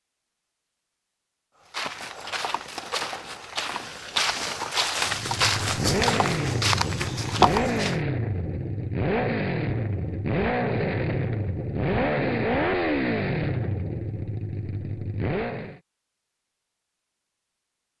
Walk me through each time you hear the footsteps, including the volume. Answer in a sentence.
The footsteps can be heard from 1.7 to 8.0 s, getting louder.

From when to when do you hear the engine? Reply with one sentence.
You can hear the engine from 5.0 to 15.8 s.